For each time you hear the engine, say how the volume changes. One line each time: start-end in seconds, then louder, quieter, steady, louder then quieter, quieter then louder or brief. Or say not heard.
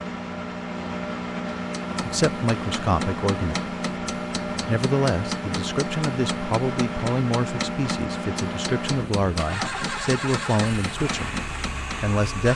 0.0-12.5 steady.